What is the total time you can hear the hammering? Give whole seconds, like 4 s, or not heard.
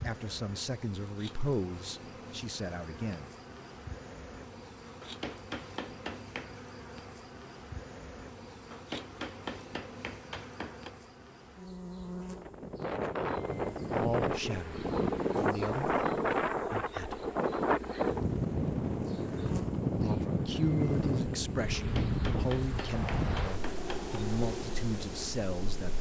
6 s.